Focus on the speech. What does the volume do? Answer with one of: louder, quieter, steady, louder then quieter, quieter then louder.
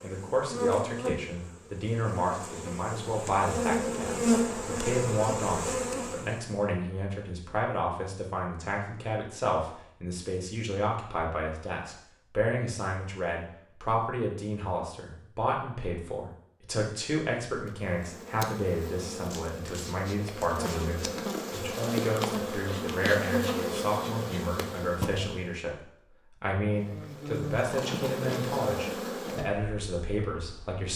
steady.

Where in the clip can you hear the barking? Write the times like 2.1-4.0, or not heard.
not heard.